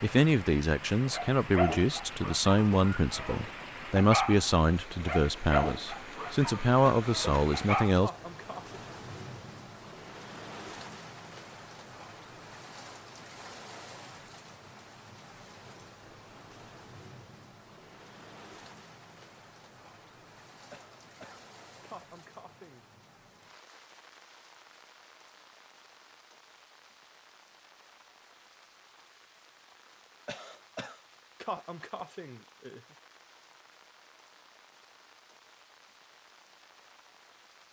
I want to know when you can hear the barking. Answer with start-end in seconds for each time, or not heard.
1.1-8.0.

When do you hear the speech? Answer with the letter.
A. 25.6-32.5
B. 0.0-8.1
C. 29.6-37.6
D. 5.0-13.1
B.